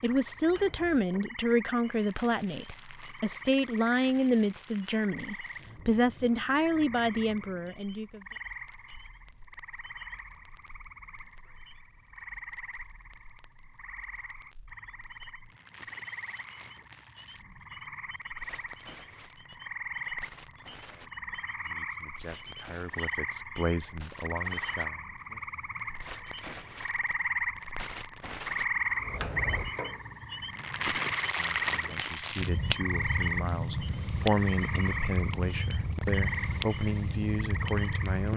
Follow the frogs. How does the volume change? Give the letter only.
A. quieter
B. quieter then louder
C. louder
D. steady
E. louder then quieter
C.